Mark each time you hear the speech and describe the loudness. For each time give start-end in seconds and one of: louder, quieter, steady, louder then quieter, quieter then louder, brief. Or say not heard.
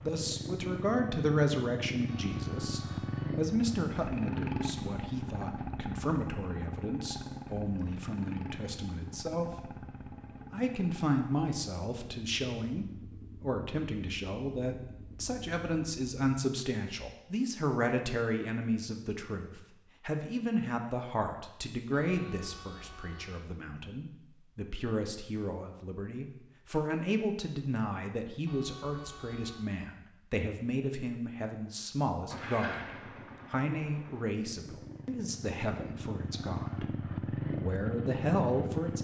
0.0-9.8 quieter
10.5-38.9 steady.